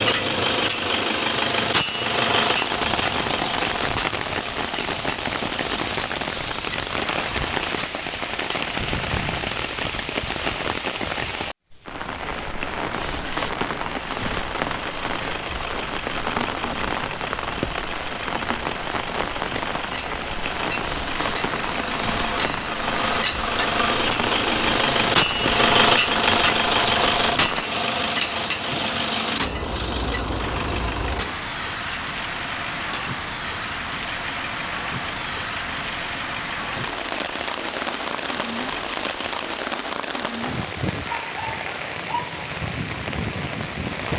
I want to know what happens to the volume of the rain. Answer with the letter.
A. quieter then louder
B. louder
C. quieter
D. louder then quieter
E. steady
E.